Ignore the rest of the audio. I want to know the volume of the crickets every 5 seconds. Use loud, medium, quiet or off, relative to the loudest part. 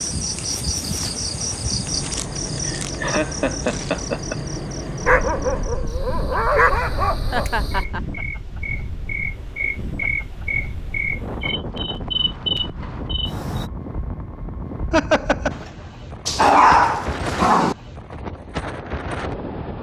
loud, medium, loud, off.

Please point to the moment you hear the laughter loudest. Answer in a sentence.
The loudest moment of the laughter is at 15 seconds.